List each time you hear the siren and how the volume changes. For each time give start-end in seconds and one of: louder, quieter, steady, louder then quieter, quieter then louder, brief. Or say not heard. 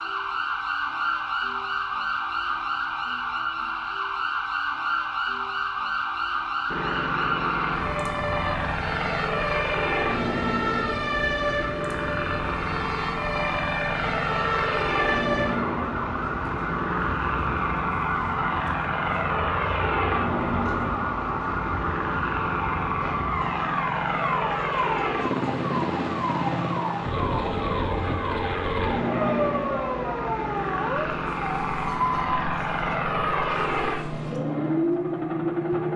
0.0-35.9 steady.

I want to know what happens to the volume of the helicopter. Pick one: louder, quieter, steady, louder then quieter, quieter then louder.
steady.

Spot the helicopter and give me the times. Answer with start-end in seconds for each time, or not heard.
6.7-35.9.